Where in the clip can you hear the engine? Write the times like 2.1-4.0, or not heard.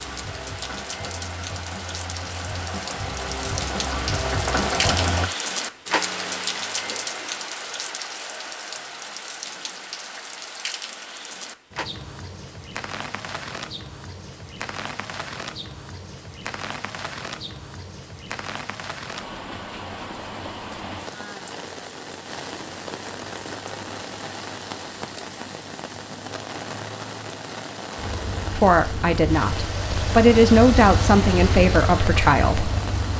0.0-5.3, 27.9-33.1.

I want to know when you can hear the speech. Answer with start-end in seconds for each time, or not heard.
28.5-32.7.